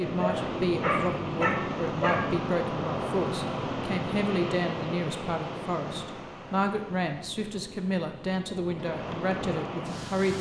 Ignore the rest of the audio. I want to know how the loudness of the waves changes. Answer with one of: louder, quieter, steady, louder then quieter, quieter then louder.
quieter then louder.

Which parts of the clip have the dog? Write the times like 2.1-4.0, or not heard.
0.1-2.2.